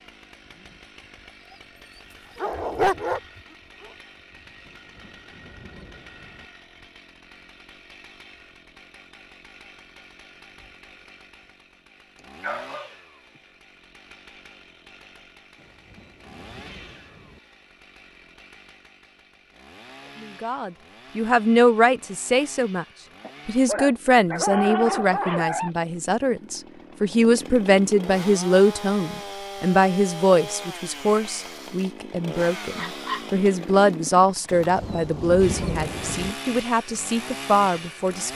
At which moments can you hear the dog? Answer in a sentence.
You can hear the dog from 2.4 to 3.9 s, from 12.4 to 12.9 s, from 23.2 to 25.7 s and from 32.8 to 33.2 s.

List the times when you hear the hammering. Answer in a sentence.
You can't hear the hammering here.